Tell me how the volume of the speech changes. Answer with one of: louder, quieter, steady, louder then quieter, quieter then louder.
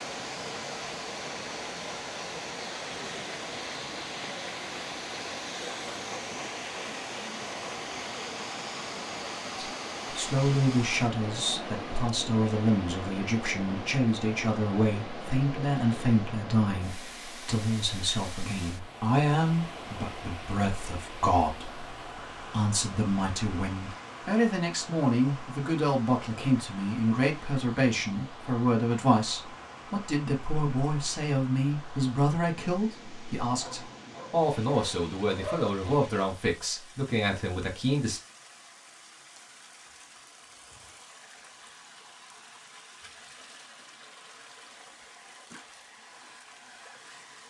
steady.